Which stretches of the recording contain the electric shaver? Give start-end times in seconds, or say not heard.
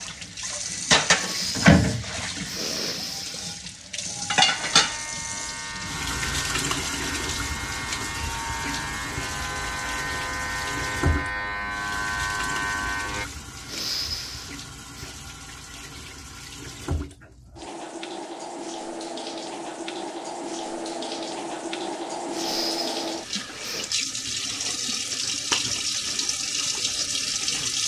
4.5-13.3.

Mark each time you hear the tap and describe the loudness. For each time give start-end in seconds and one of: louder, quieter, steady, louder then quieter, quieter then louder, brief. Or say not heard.
0.0-27.8 quieter then louder.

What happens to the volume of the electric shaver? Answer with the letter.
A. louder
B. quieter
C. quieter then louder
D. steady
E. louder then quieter
A.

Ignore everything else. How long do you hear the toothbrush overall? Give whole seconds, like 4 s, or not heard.
not heard.